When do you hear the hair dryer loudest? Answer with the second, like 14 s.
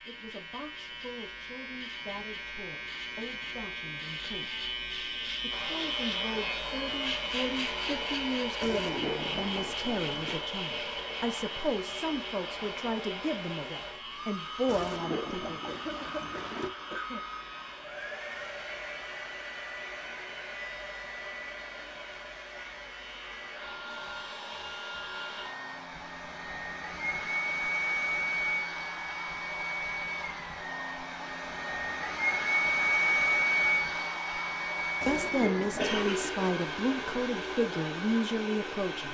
33 s.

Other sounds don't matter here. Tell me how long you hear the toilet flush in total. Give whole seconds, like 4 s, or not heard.
5 s.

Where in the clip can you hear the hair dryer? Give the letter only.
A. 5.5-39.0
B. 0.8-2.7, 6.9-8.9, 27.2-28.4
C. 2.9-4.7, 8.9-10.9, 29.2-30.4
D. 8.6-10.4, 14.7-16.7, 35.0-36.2
A.